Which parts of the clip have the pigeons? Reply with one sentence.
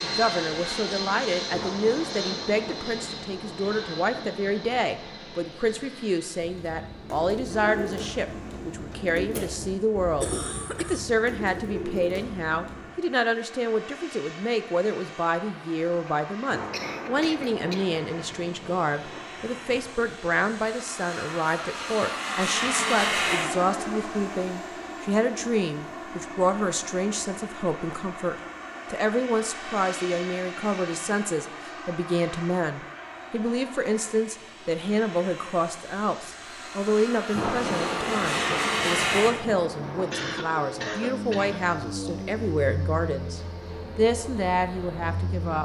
You can hear the pigeons from 6.4 to 12.9 s.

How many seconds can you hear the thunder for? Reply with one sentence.
You can hear the thunder for 12 seconds altogether.